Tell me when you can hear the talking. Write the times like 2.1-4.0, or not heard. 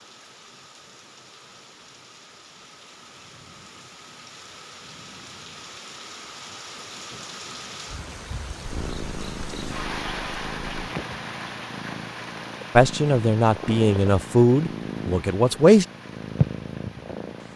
12.8-15.8.